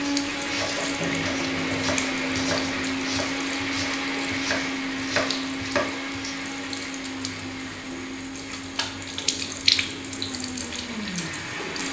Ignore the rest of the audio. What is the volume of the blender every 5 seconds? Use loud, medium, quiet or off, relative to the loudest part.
loud, medium, medium.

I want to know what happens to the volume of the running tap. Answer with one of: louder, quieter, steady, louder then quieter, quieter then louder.
quieter then louder.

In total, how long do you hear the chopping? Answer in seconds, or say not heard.
6 s.